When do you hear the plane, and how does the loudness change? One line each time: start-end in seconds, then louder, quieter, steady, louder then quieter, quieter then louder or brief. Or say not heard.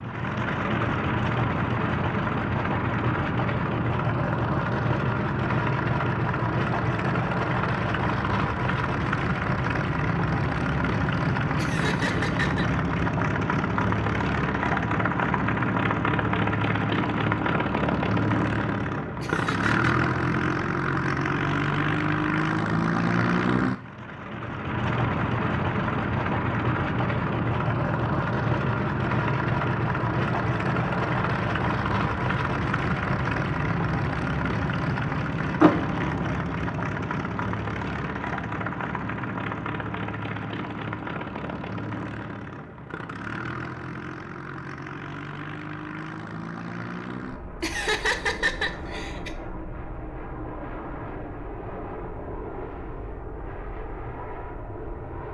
0.0-55.2 quieter.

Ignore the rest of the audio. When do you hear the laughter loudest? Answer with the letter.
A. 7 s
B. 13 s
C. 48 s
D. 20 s
C.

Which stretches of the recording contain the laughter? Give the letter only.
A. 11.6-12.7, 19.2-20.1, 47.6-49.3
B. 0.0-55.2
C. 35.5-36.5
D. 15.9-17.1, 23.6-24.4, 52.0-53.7
A.